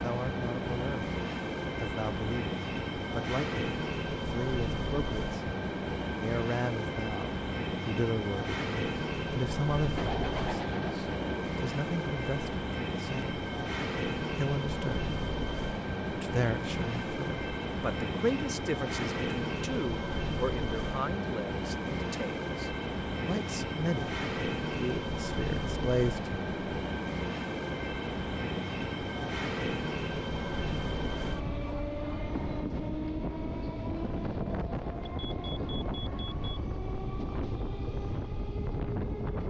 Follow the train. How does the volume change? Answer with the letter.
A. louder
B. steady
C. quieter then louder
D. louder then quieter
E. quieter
B.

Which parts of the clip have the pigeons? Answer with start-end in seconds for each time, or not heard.
9.9-11.5.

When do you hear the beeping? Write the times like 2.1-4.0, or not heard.
35.0-36.5.